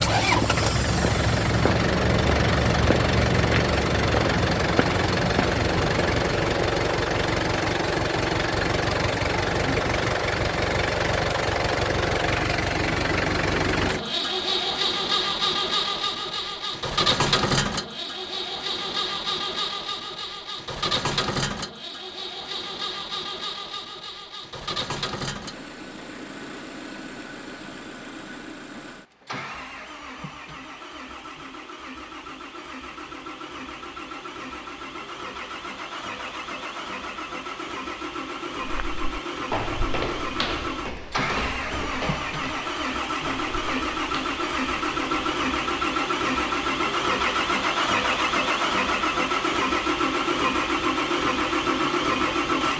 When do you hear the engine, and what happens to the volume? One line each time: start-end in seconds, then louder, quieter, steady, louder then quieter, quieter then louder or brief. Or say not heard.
0.0-52.7 quieter then louder.